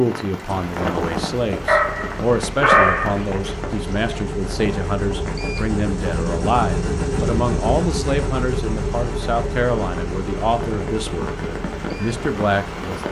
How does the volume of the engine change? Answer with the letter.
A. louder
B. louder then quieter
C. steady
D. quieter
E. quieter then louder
B.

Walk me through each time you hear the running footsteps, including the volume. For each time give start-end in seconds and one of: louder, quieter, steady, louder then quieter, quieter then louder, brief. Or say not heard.
not heard.